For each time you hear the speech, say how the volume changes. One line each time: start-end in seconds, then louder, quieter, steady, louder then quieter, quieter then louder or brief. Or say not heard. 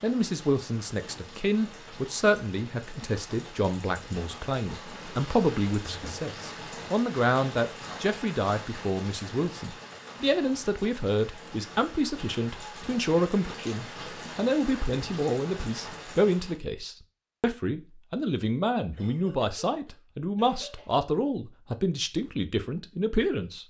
0.0-23.6 steady.